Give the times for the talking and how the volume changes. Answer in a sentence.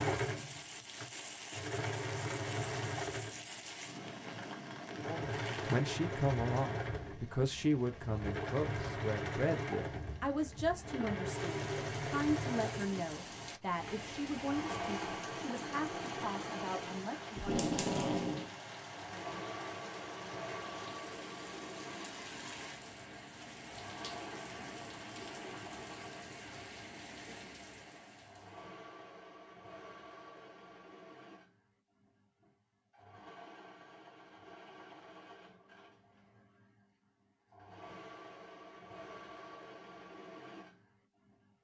The talking can be heard from 5.0 to 17.6 s, getting quieter.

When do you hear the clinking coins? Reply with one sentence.
The clinking coins can't be heard in this clip.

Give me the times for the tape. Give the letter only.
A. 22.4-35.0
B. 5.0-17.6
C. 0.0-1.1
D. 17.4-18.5
D.